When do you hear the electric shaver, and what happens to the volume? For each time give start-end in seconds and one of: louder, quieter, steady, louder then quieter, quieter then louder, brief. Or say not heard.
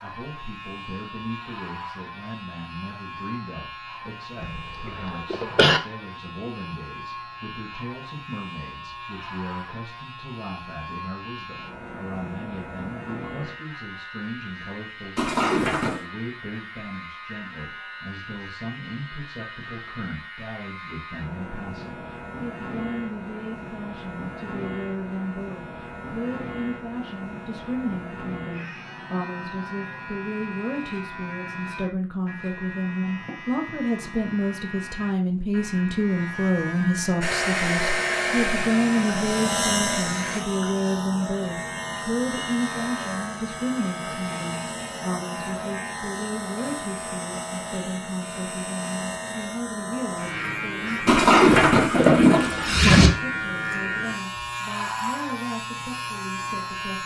0.0-57.0 louder.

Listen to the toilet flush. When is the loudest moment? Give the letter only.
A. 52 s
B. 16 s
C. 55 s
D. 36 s
A.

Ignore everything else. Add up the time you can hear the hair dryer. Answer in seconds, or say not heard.
3 s.